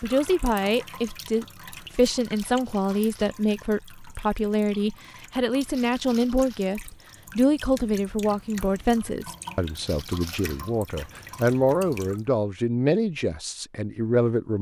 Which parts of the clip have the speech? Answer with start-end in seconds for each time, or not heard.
0.0-14.5.